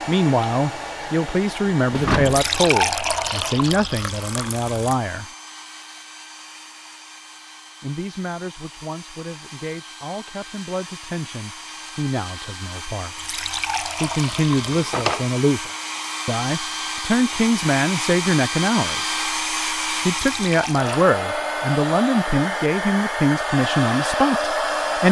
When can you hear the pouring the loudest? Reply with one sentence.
The loudest moment of the pouring is at 3 seconds.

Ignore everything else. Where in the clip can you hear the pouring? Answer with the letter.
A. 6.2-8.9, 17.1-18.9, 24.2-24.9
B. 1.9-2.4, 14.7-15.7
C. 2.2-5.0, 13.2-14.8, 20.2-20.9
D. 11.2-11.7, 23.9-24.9
C.